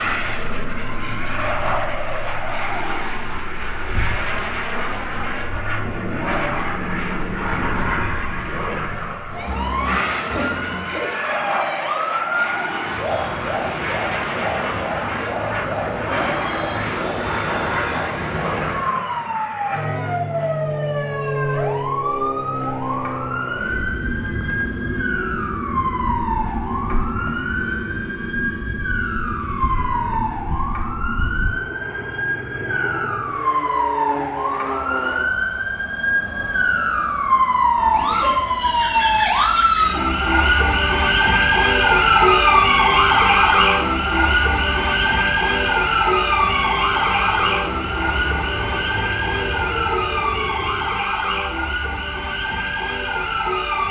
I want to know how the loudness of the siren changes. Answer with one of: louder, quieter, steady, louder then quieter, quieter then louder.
louder.